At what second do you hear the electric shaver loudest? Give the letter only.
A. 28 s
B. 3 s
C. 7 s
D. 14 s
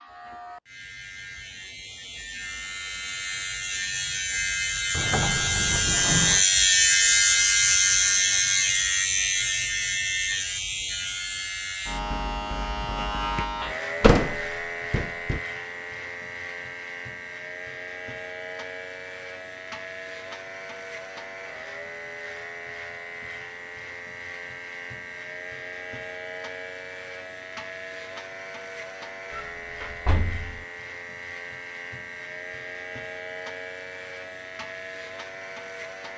C.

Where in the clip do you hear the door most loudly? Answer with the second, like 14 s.
14 s.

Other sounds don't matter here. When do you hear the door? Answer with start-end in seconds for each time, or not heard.
4.9-6.5, 14.0-15.4, 29.3-30.6.